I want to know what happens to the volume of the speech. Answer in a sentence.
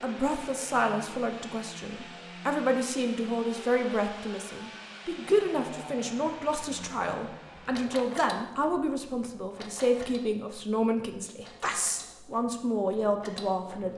The loudness of the speech stays about the same.